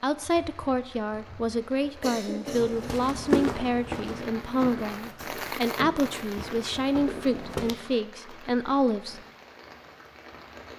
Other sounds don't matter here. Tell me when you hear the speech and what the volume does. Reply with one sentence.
The speech can be heard from 0.0 to 9.2 s, at a steady volume.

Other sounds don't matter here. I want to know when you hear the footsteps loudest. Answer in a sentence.
The volume of the footsteps peaks at 3 seconds.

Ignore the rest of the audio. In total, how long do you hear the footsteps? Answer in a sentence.
The footsteps can be heard for 5 seconds in total.